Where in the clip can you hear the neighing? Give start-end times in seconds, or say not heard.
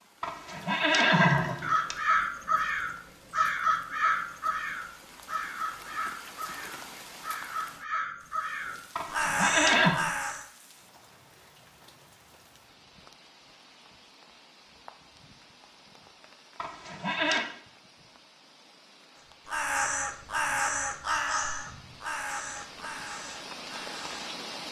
0.2-1.9, 8.9-9.9, 16.6-17.4.